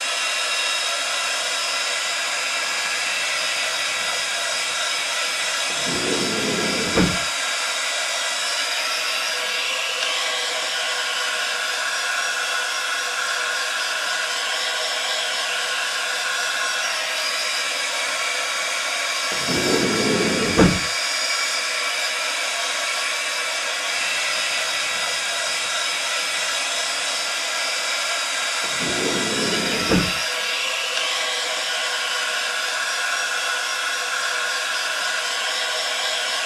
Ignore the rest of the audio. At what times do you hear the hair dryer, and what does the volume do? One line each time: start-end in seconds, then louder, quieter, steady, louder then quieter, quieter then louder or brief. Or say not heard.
0.0-36.4 steady.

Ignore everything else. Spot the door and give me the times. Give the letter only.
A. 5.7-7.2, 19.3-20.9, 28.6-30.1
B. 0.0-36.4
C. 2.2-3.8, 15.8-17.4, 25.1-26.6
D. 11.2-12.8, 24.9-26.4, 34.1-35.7
A.